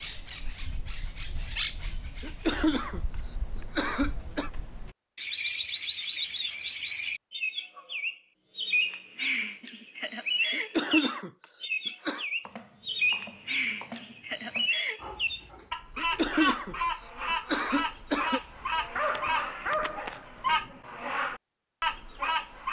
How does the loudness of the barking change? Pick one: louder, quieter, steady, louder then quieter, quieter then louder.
louder.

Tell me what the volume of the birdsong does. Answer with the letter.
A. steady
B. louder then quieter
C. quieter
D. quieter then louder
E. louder
E.